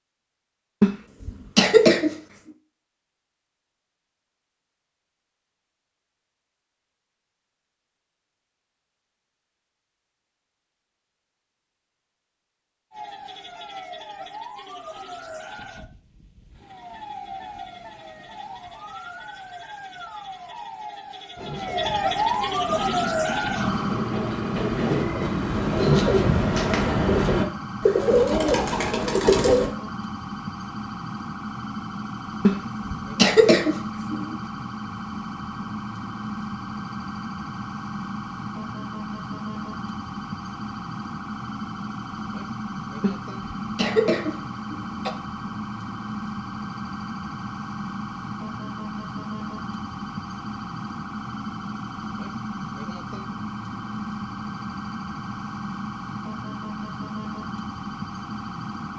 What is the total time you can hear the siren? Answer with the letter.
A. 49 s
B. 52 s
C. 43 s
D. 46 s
D.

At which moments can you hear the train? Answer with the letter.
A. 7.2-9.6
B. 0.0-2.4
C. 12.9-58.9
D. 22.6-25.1
D.